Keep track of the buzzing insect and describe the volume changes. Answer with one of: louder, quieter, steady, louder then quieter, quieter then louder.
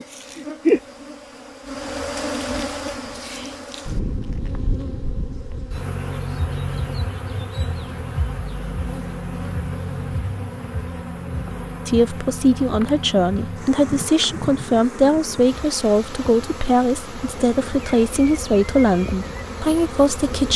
quieter.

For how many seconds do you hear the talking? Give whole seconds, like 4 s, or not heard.
9 s.